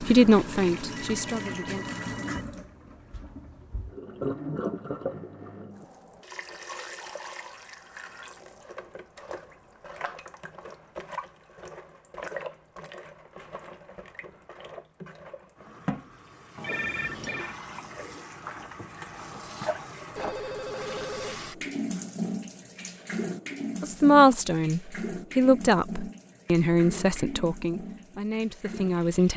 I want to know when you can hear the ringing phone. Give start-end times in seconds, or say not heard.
0.9-2.5, 16.6-17.6, 20.1-21.4.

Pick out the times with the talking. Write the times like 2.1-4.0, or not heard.
0.0-1.9, 23.8-29.3.